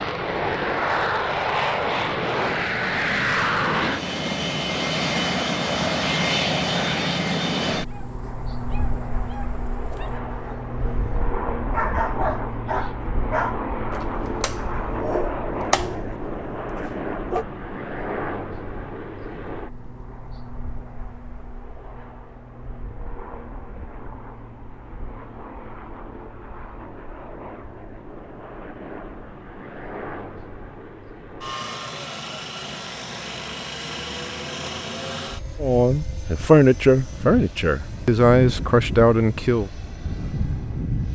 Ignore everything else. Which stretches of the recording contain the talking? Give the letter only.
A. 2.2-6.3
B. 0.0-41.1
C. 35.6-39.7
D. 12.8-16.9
C.